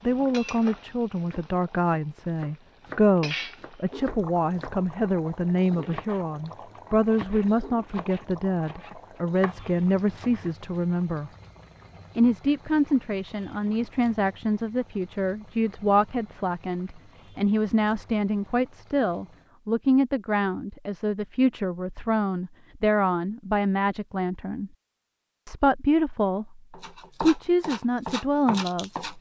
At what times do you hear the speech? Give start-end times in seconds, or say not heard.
0.1-11.3, 12.2-24.7, 25.4-26.6, 27.2-29.1.